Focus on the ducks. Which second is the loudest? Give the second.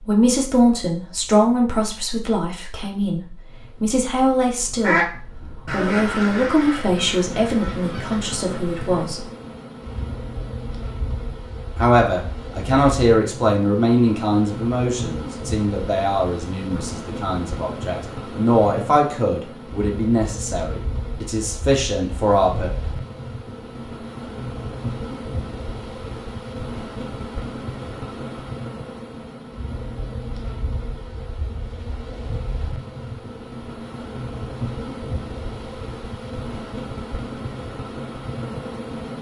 5 s.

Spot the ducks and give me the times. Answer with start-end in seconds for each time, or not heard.
4.7-9.1.